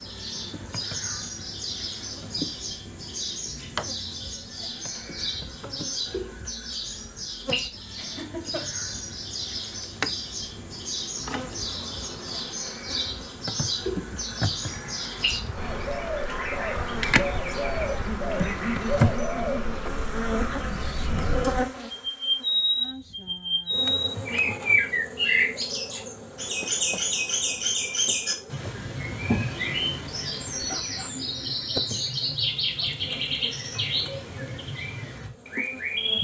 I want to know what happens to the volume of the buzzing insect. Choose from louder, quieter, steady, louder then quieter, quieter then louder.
louder then quieter.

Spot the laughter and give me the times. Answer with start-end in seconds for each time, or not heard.
8.0-8.7, 18.1-19.6, 30.6-31.1.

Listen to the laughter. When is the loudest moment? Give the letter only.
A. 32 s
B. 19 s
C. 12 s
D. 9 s
B.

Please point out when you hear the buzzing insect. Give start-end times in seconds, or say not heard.
0.0-36.1.